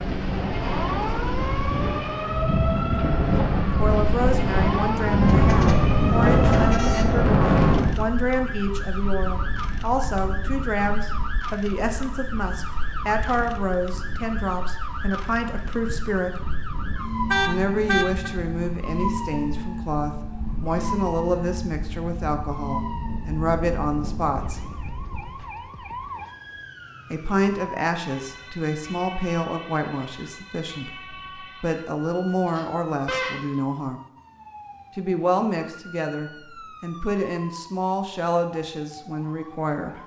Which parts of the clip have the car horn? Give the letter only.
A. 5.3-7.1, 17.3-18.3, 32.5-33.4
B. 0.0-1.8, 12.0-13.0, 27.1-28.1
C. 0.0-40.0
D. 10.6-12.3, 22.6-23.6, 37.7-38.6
A.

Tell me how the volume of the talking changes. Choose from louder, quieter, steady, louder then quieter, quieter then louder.
steady.